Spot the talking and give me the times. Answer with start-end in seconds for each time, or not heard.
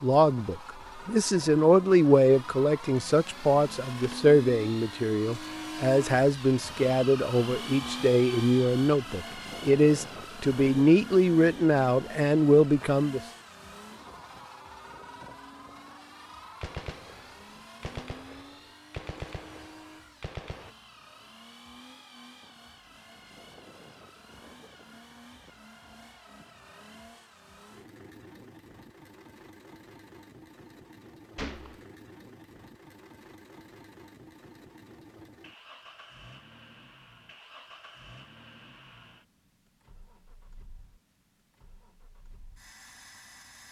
0.0-13.2.